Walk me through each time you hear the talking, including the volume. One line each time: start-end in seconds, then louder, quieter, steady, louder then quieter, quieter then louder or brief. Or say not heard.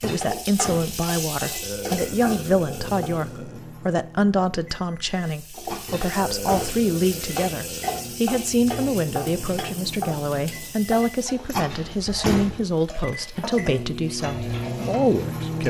0.0-15.6 steady.